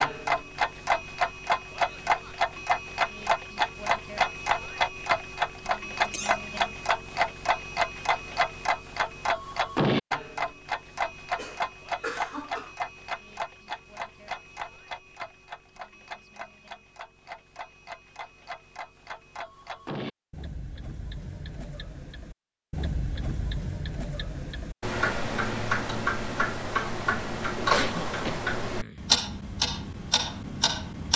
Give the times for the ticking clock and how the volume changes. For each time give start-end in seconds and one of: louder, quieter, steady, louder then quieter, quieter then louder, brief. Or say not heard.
0.0-31.1 quieter then louder.